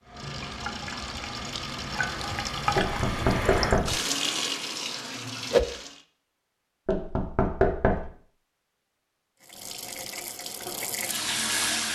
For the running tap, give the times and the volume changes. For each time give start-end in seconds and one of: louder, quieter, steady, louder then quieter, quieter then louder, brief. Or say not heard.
0.1-6.0 louder
9.4-11.9 brief.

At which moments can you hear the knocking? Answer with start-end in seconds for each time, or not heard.
2.8-4.0, 6.8-8.1.